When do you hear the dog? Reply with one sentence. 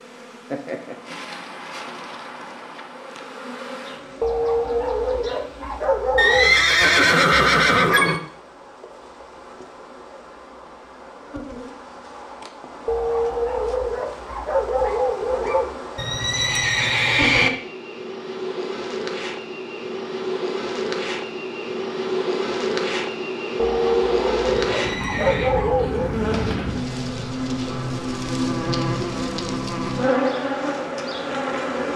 The dog can be heard from 4.2 to 6.5 s, from 12.8 to 15.8 s and from 23.6 to 26.2 s.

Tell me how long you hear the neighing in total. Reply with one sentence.
The neighing can be heard for 5 seconds in total.